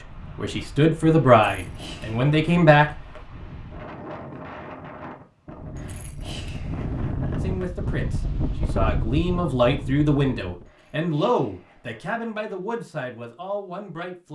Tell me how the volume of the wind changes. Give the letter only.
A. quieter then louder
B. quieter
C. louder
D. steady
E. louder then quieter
C.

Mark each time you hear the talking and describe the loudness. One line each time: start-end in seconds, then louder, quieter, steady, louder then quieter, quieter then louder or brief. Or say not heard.
0.3-2.9 brief
7.4-14.3 louder then quieter.